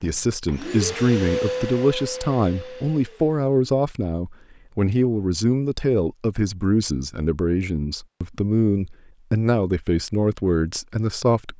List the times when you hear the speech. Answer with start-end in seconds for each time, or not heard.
0.0-11.5.